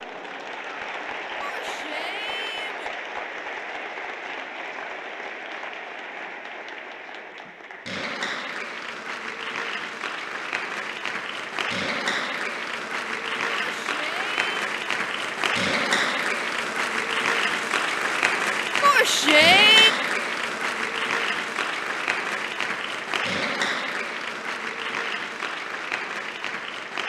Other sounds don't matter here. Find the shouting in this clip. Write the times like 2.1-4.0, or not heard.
1.4-2.9, 13.6-14.4, 18.8-19.9.